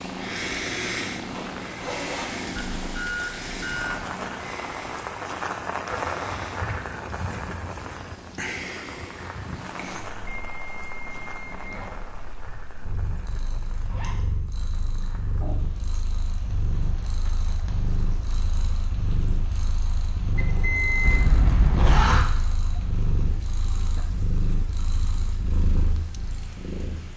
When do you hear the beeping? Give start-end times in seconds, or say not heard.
2.8-4.0, 10.2-12.0, 20.4-21.2.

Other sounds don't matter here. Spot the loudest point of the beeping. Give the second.
21 s.